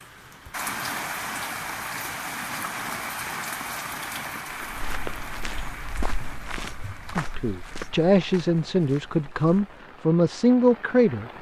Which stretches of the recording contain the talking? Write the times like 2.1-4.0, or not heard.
7.1-11.3.